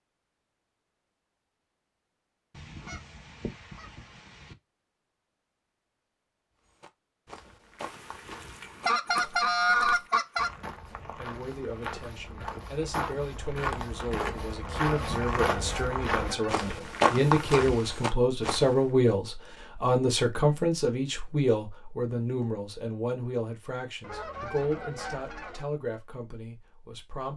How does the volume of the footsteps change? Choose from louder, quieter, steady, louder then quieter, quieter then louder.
louder.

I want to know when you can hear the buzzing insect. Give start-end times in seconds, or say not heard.
not heard.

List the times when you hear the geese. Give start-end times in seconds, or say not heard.
2.5-4.5, 7.8-10.5, 14.9-16.6, 24.0-25.6.